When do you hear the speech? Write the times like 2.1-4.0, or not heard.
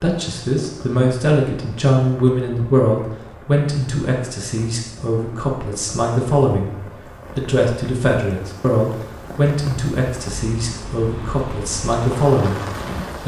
0.0-6.8, 7.3-12.7.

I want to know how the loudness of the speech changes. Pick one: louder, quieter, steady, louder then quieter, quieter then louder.
steady.